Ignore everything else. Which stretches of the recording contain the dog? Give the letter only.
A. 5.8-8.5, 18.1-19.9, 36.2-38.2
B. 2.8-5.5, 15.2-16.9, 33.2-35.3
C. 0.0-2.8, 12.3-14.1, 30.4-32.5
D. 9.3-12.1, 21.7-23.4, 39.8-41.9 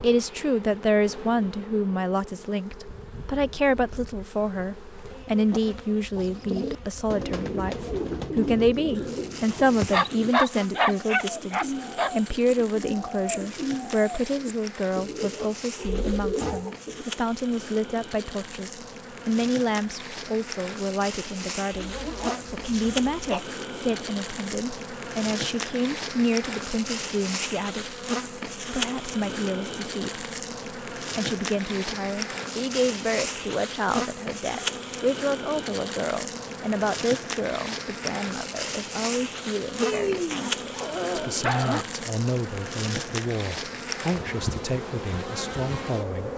D.